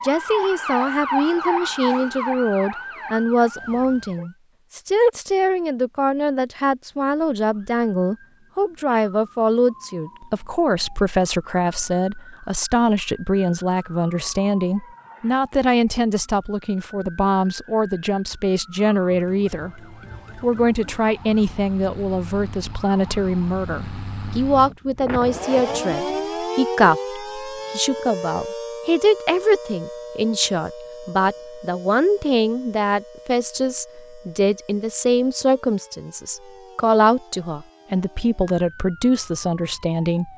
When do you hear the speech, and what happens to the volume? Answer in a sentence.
You can hear the speech from 0.0 to 19.8 s, at a steady volume; and from 20.4 to 40.3 s, at a steady volume.